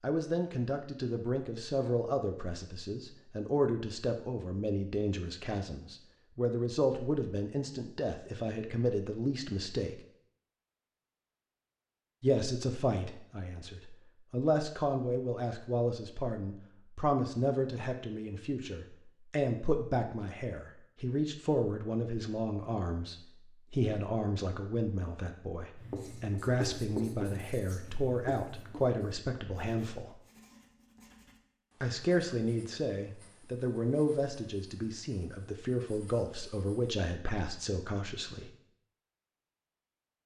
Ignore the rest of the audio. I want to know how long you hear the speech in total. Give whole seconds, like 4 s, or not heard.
35 s.